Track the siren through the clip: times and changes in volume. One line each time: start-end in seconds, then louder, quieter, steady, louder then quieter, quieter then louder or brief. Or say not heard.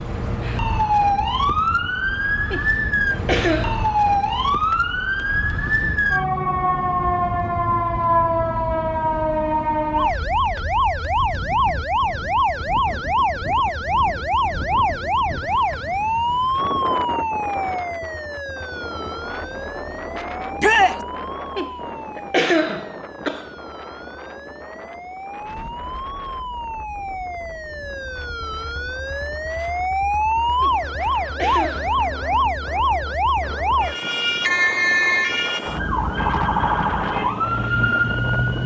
0.0-38.6 quieter then louder.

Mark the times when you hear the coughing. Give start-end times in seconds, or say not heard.
2.5-3.9, 21.6-23.5, 30.6-32.0.